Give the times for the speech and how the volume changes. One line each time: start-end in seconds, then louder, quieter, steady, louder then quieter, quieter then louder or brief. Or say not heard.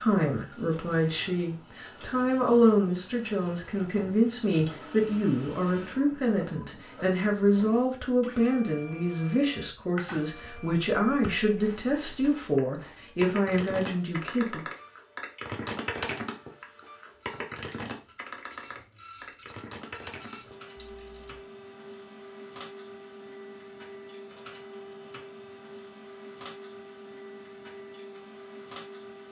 0.0-14.6 steady.